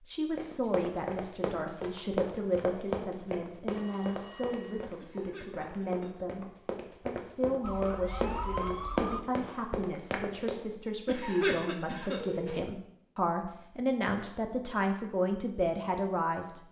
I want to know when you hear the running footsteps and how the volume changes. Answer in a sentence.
You can hear the running footsteps from 0.3 to 10.6 s, getting quieter then louder.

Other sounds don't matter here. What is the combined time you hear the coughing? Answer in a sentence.
You can hear the coughing for 2 seconds altogether.